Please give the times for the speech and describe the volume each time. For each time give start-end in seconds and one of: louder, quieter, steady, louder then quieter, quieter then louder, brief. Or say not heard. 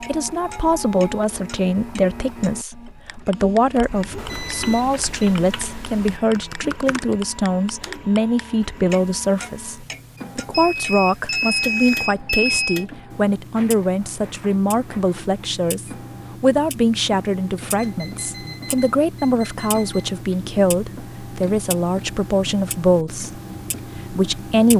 0.1-23.4 steady
24.1-24.7 brief.